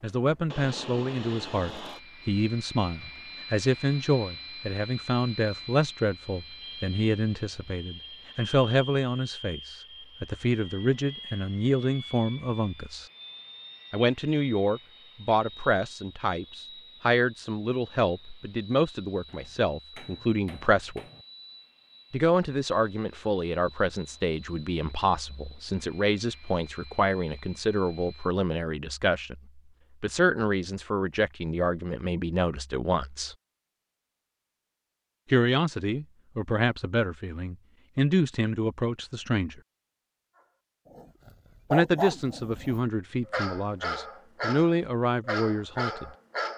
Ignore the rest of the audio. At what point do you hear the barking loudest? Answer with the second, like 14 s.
42 s.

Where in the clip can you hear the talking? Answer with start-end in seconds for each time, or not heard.
0.0-13.1, 13.9-21.0, 22.1-33.4, 35.3-39.6, 41.7-46.1.